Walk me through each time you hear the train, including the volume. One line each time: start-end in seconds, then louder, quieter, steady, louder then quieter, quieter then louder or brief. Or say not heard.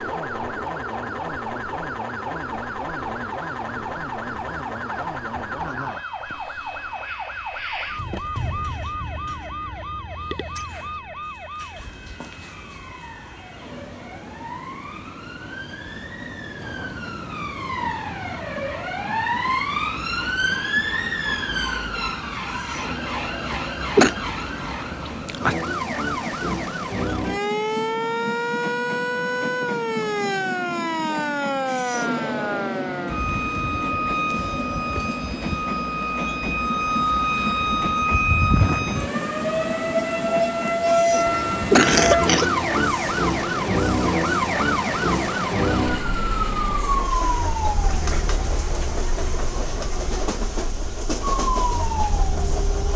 0.0-52.9 louder.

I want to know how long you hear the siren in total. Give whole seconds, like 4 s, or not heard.
53 s.